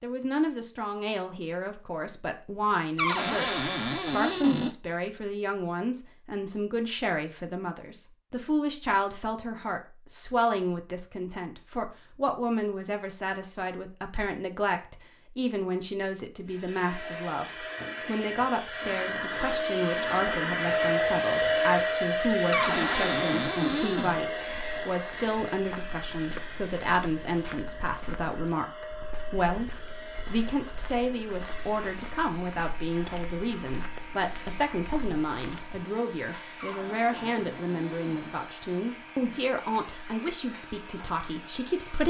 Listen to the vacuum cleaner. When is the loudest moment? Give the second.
21 s.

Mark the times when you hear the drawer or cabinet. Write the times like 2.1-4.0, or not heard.
3.0-4.7, 22.5-24.2, 36.5-38.4.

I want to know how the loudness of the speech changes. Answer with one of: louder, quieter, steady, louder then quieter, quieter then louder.
steady.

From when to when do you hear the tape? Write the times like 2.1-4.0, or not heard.
not heard.